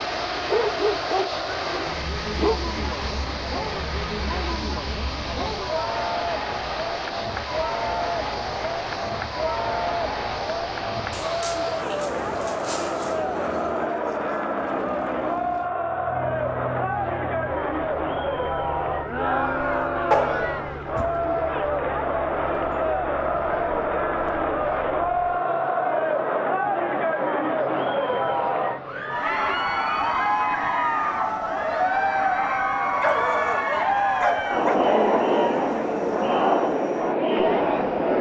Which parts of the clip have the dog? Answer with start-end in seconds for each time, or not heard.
0.5-2.6, 11.1-13.2, 20.1-21.1, 33.0-34.8.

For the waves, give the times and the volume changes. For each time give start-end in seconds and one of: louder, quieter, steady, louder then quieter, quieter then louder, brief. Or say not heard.
not heard.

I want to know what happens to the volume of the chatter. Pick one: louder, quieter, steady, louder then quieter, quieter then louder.
louder.